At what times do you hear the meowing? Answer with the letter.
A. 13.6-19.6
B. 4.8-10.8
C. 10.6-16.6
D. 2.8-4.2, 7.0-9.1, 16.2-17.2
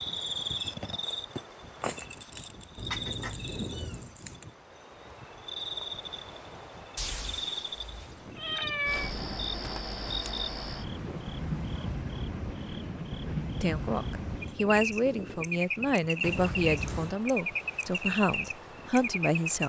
D.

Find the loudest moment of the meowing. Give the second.
9 s.